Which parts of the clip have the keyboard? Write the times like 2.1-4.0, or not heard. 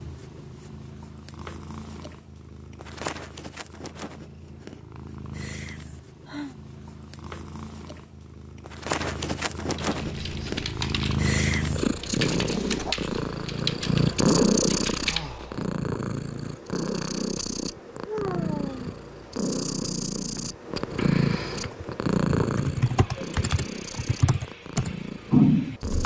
9.8-15.7, 21.5-26.0.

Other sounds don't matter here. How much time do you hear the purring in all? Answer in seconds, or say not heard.
26 s.